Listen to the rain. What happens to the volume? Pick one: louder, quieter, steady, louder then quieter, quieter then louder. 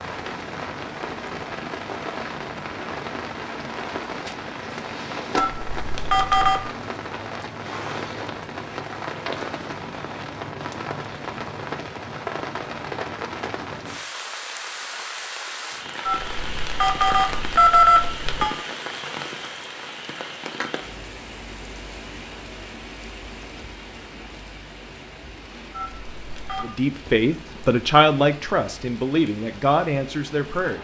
quieter.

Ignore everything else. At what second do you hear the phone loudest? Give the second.
18 s.